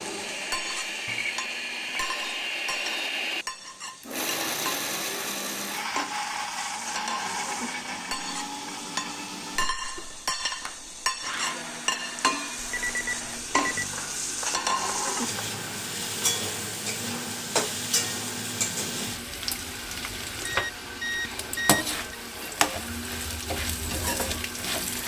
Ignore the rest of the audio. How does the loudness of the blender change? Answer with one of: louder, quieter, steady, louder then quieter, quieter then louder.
quieter.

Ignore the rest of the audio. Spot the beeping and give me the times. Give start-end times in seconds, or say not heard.
1.1-2.0, 12.6-13.9, 20.4-22.1.